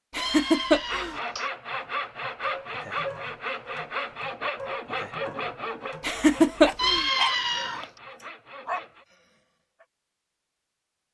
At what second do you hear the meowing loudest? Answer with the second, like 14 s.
7 s.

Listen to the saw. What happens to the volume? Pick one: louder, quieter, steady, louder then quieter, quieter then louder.
quieter.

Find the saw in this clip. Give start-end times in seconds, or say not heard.
0.8-9.1.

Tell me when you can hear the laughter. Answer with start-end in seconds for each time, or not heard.
0.1-1.1, 6.0-7.0.